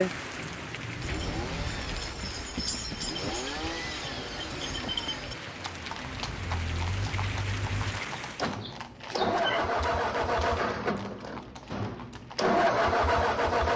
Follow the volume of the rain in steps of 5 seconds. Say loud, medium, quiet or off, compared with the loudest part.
loud, loud, off.